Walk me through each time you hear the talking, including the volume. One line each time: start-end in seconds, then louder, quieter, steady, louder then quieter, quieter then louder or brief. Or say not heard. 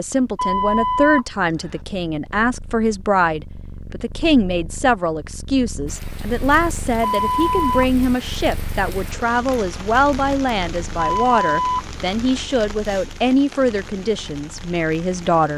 0.0-15.5 steady.